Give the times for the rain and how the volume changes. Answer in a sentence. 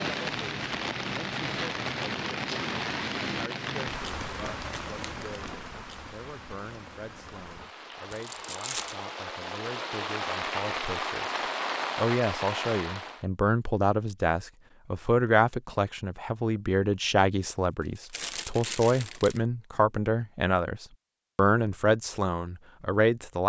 You can hear the rain from 0.0 to 13.2 s, getting quieter then louder.